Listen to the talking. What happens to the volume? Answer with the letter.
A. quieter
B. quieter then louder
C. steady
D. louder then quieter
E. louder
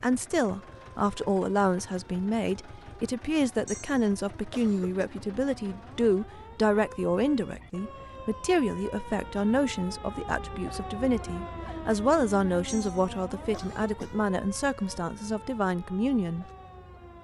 C.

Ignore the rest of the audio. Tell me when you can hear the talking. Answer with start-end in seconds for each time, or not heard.
0.0-16.4.